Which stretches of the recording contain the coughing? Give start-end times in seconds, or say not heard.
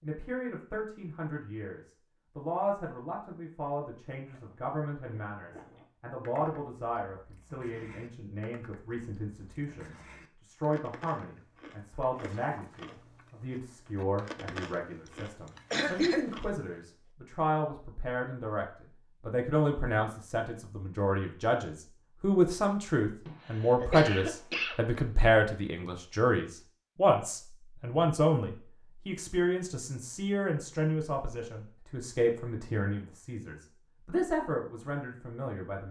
15.7-16.2, 23.2-24.9.